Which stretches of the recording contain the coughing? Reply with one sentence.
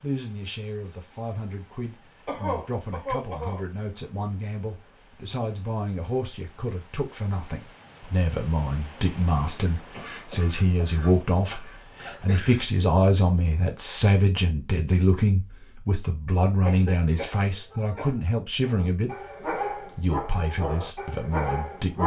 You can hear the coughing from 2.2 to 3.6 s, from 9.9 to 12.7 s and from 16.6 to 18.2 s.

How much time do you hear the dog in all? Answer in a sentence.
The dog can be heard for 3 seconds in total.